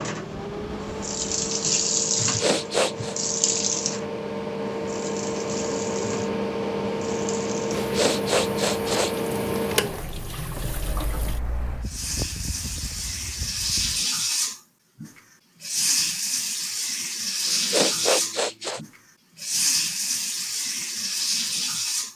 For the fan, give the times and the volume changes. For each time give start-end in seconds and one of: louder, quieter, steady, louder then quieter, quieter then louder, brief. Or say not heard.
0.0-14.1 louder then quieter.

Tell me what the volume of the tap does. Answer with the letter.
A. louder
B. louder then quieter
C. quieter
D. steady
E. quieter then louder
E.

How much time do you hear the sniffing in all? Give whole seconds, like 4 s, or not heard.
4 s.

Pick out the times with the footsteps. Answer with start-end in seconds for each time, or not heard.
not heard.